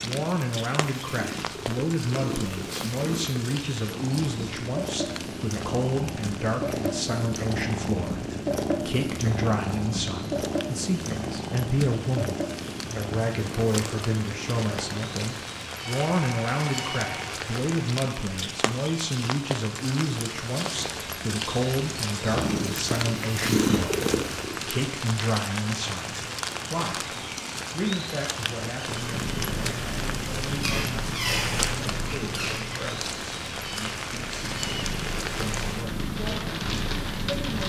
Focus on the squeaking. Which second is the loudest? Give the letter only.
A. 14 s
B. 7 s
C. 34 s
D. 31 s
D.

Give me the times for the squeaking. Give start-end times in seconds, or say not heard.
30.6-32.9.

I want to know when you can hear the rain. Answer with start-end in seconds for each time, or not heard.
0.0-37.6.